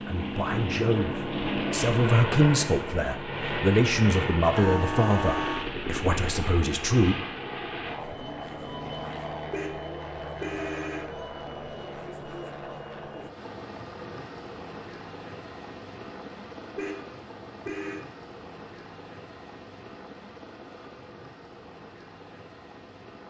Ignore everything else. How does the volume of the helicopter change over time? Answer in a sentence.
The volume of the helicopter goes down.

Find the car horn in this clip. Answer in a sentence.
You can hear the car horn from 4.5 to 5.7 s, from 9.5 to 11.2 s and from 16.8 to 18.1 s.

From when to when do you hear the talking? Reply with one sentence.
You can hear the talking from 0.1 to 7.2 s.